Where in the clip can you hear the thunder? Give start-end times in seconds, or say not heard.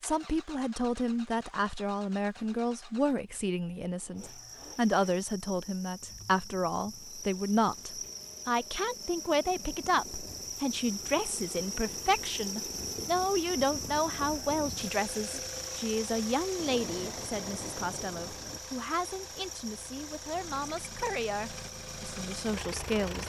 16.6-18.6.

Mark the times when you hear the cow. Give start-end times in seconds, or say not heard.
not heard.